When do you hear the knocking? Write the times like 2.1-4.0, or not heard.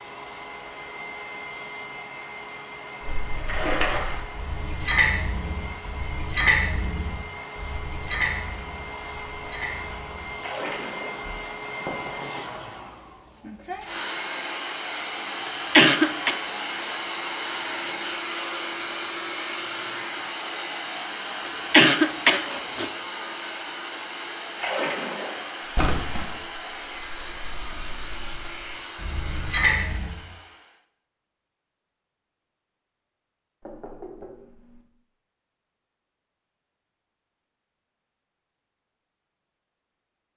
11.8-12.4, 33.6-34.9.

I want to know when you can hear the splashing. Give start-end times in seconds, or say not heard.
3.0-11.2, 24.6-30.1.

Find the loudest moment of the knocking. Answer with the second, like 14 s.
12 s.